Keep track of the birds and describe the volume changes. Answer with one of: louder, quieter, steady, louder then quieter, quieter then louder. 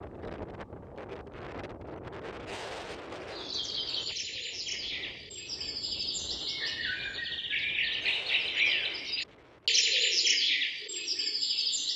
louder.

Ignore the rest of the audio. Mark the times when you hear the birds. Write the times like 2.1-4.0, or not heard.
3.3-11.9.